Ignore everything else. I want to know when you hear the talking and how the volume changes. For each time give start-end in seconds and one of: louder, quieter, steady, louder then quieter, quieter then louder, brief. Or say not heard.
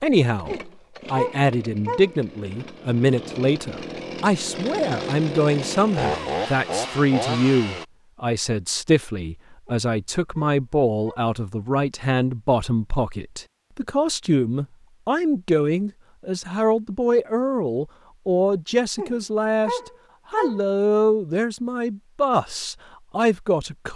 0.0-23.9 steady.